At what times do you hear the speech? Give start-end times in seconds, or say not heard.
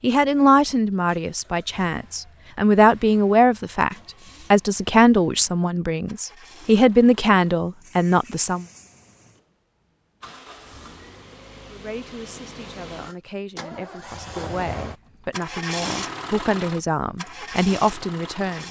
0.0-8.7, 11.7-18.6.